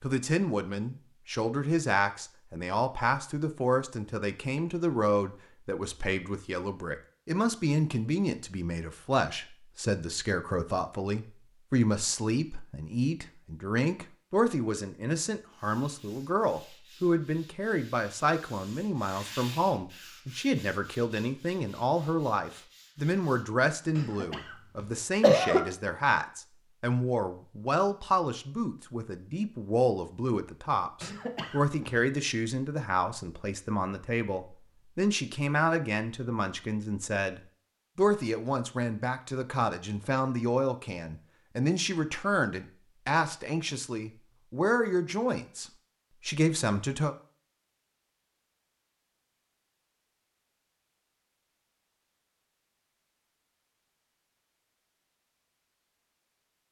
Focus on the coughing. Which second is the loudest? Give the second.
25 s.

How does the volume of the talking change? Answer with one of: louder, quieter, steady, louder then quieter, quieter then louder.
steady.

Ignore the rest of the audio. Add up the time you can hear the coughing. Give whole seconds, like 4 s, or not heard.
3 s.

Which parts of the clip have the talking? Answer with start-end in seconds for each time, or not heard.
0.0-47.1.